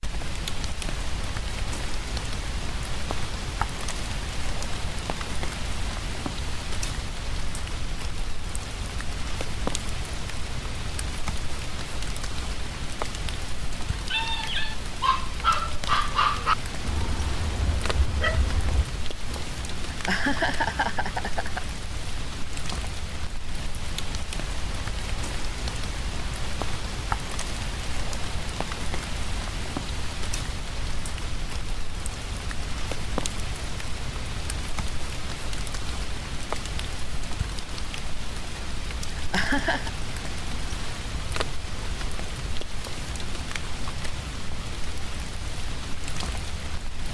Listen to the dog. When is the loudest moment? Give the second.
16 s.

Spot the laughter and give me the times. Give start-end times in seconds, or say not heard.
19.9-21.6, 39.1-39.9.